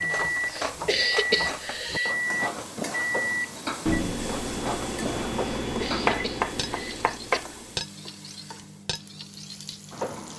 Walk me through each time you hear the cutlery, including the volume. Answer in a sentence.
The cutlery can be heard from 0.0 to 10.3 s, getting quieter.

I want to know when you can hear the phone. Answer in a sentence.
The phone can't be heard in this clip.